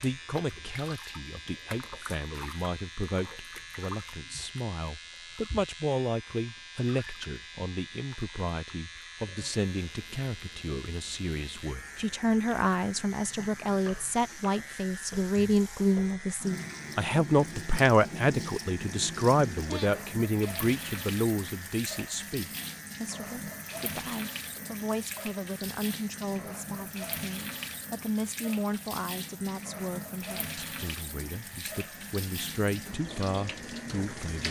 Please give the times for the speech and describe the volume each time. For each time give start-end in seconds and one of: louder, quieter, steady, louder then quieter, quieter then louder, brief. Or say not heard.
0.0-34.4 louder then quieter.